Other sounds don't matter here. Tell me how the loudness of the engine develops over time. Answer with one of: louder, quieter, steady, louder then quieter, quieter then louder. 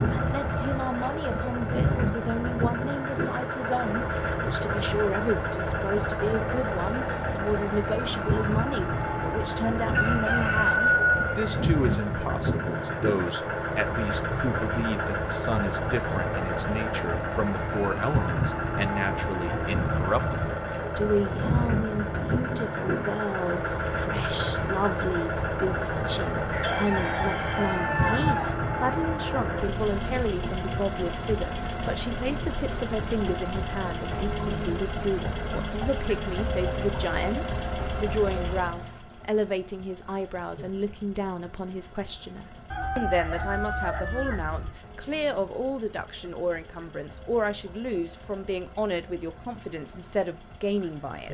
quieter.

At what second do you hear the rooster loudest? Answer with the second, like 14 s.
11 s.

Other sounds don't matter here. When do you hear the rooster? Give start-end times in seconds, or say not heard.
9.9-11.6, 26.5-28.6, 42.7-44.7.